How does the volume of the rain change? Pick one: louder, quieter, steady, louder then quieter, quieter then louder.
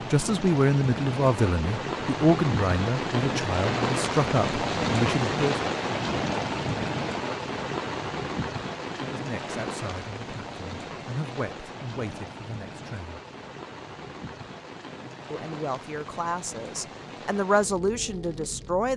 quieter.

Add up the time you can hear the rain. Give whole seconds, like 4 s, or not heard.
19 s.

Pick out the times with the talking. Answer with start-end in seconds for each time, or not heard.
0.1-5.5, 8.9-13.2, 15.3-18.9.